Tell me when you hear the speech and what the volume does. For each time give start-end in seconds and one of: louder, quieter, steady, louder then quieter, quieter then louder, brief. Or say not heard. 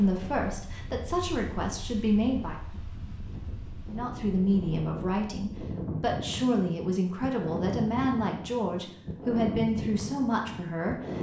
0.0-2.5 brief
3.9-11.1 steady.